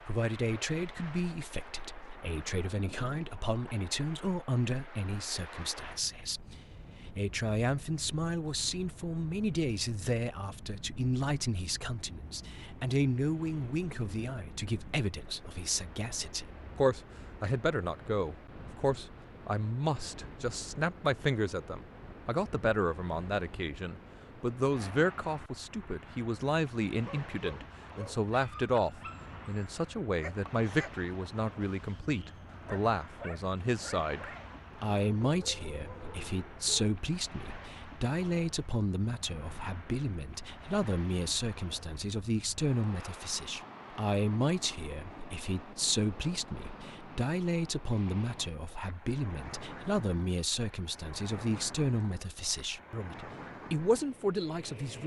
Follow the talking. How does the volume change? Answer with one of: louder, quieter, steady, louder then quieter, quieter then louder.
steady.